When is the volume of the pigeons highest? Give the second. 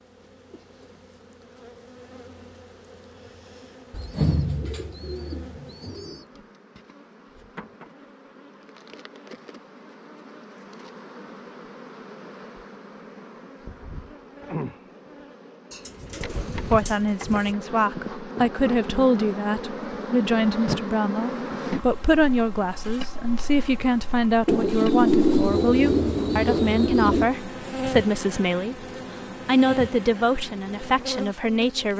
25 s.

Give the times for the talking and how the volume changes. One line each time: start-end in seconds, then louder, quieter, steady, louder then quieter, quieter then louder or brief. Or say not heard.
16.7-28.9 steady
29.4-31.9 brief.